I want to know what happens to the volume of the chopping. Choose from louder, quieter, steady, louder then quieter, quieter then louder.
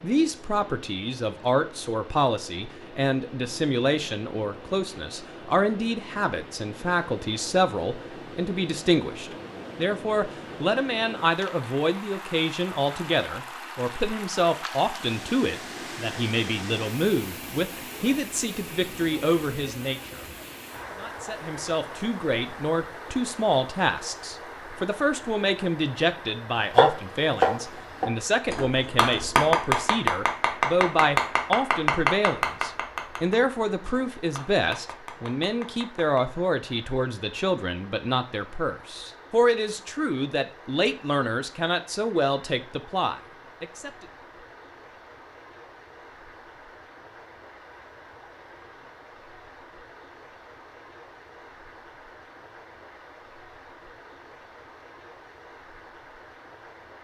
quieter.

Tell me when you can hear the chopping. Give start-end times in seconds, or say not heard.
26.7-36.3.